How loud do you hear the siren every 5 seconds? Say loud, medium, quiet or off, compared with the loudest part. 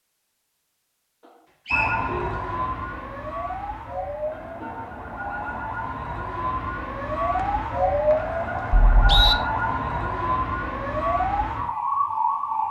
medium, loud, loud.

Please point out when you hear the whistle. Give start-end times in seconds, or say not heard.
1.6-2.1, 7.3-9.3.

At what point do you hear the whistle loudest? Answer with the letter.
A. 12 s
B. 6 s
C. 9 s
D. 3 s
C.